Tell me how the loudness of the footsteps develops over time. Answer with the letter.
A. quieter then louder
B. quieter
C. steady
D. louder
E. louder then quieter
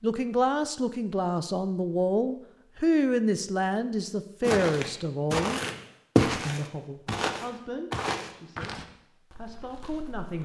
E.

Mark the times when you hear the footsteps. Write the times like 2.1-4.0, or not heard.
4.4-10.4.